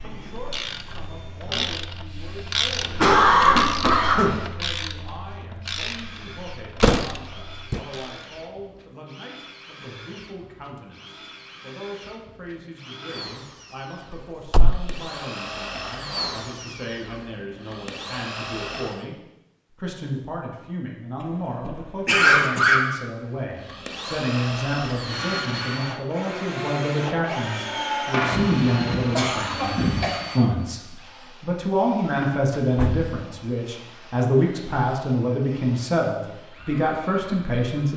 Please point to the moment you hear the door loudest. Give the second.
7 s.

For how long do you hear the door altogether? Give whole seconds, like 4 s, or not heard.
3 s.